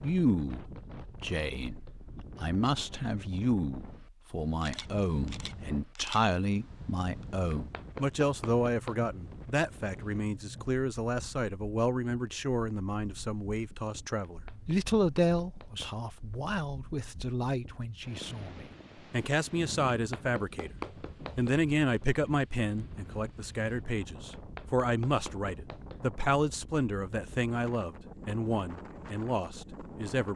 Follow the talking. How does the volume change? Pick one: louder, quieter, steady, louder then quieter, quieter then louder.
steady.